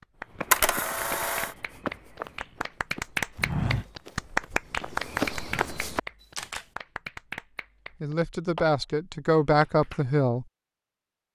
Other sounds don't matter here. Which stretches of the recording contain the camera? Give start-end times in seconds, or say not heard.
0.5-1.5, 6.2-6.7.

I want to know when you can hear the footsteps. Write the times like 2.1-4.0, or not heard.
0.2-6.5.